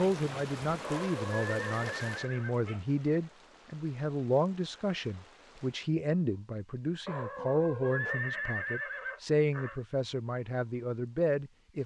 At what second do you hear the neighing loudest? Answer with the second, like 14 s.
8 s.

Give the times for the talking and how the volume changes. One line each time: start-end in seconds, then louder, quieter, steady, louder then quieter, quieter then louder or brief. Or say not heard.
0.0-11.8 steady.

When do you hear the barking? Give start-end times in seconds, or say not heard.
0.8-2.9, 7.0-8.4.